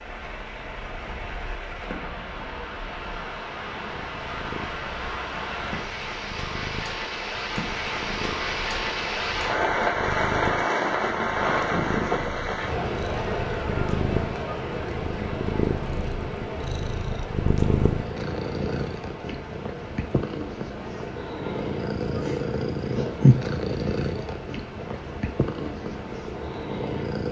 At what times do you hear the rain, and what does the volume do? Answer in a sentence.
The rain can be heard from 0.0 to 27.2 s, getting louder then quieter.